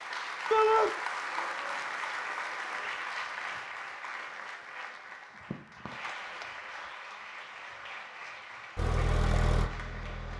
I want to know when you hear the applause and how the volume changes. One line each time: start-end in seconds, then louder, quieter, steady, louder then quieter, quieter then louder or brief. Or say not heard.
0.0-10.3 quieter.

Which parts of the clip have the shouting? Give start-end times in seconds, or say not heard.
0.5-0.9.